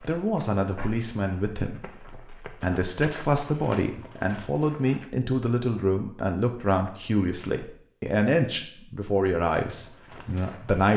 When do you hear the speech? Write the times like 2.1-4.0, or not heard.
0.0-10.9.